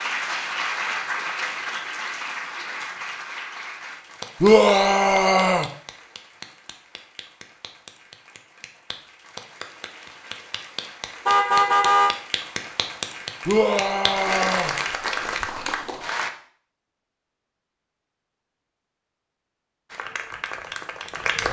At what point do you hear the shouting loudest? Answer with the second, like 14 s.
5 s.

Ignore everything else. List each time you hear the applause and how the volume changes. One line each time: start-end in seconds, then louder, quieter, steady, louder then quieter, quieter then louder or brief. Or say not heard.
0.0-16.3 quieter then louder
19.9-21.4 brief.